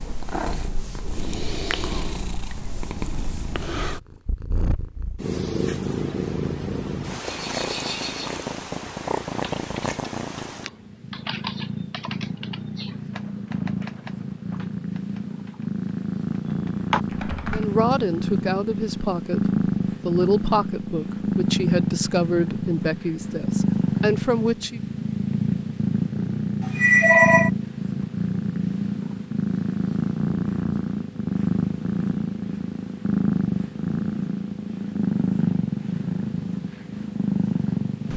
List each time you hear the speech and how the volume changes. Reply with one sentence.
The speech can be heard from 17.5 to 24.8 s, at a steady volume.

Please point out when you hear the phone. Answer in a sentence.
You can hear the phone from 26.6 to 27.5 s.